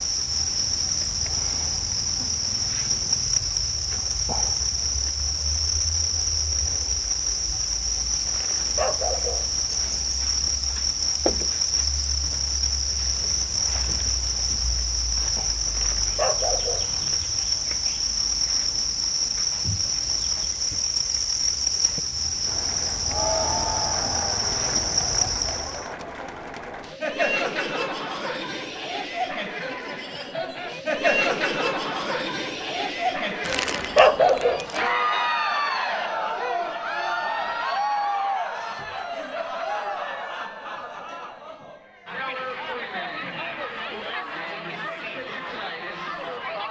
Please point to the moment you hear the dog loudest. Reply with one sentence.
The loudest moment of the dog is at 34 seconds.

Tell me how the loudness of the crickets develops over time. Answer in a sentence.
The loudness of the crickets stays about the same.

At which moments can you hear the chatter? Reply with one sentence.
The chatter can be heard from 22.4 to 46.6 s.